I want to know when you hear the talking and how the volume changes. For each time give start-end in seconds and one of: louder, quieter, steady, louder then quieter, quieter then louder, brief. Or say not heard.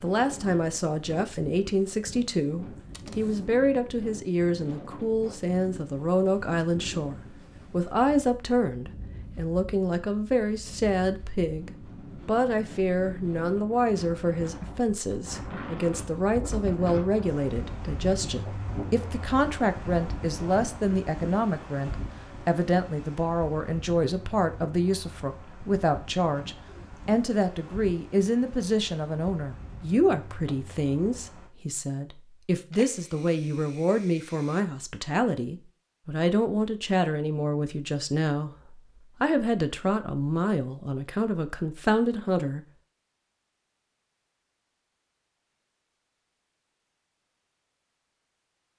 0.0-42.6 steady.